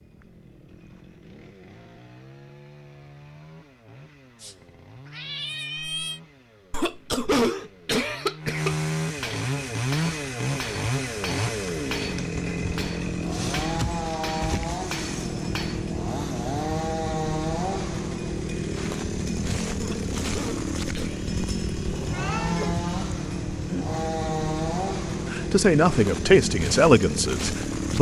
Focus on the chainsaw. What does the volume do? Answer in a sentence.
The volume of the chainsaw goes up.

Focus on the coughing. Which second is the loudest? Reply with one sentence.
The loudest moment of the coughing is at 7 seconds.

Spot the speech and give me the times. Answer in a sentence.
You can hear the speech from 25.3 to 27.9 s.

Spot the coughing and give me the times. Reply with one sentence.
You can hear the coughing from 6.7 to 8.8 s and from 19.8 to 21.2 s.